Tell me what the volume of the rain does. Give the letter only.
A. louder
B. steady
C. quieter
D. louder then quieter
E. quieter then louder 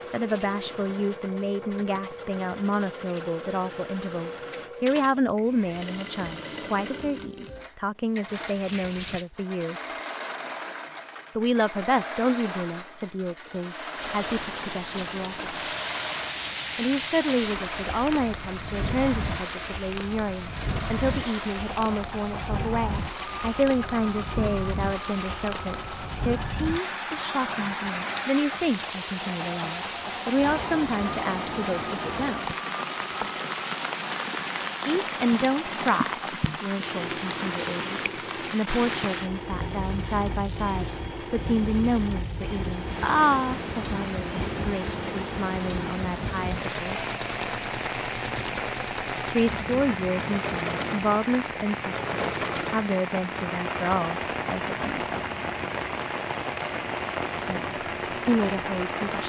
B.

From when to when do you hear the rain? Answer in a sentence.
You can hear the rain from 13.9 to 59.2 s.